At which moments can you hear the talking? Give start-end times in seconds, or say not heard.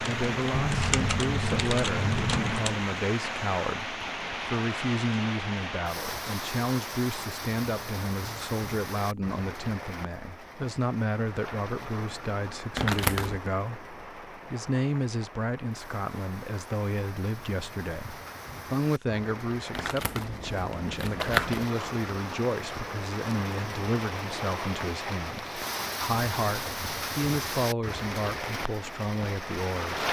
0.1-30.0.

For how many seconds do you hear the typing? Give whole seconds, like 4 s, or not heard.
3 s.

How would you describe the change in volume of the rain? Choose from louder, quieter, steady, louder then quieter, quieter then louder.
quieter then louder.